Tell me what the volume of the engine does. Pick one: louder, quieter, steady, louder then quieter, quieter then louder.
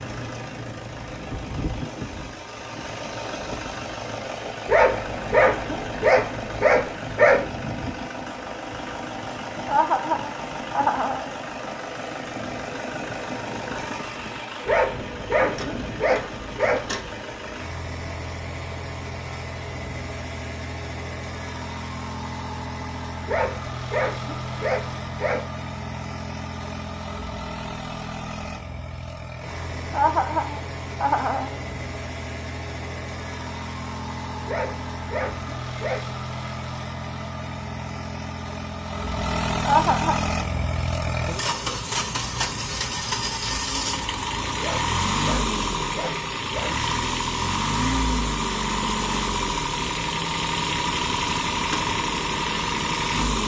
louder.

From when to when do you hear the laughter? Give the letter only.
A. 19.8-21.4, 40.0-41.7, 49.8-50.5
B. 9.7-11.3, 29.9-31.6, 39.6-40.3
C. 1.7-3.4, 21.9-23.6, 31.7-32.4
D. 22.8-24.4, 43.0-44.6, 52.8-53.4
B.